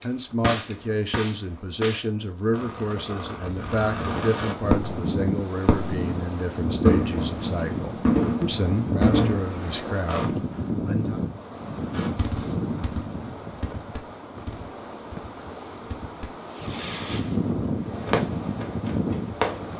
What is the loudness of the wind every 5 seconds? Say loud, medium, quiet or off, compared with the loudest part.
medium, loud, loud, loud.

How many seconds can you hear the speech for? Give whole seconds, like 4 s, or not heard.
11 s.